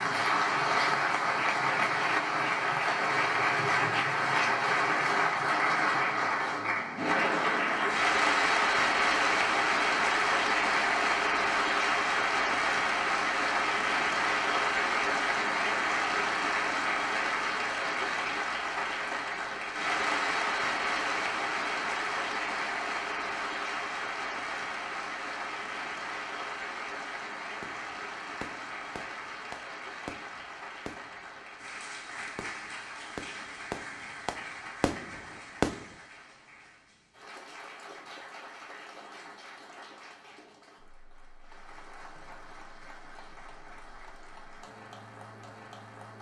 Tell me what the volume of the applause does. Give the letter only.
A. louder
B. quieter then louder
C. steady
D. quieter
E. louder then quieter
D.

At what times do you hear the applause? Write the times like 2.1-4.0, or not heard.
0.0-46.1.